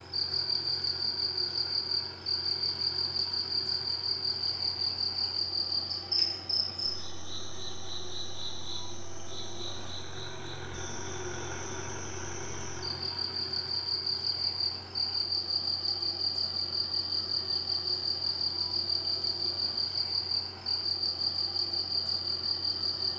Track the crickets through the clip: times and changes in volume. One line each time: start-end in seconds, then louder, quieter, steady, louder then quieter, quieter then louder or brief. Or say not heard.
0.0-23.1 quieter then louder.